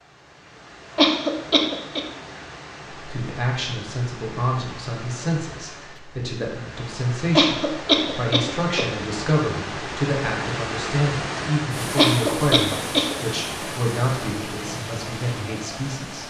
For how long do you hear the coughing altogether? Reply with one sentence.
The coughing can be heard for 4 seconds in total.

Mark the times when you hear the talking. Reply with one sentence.
You can hear the talking from 3.0 to 16.2 s.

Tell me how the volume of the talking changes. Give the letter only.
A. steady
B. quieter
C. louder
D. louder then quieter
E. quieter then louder
A.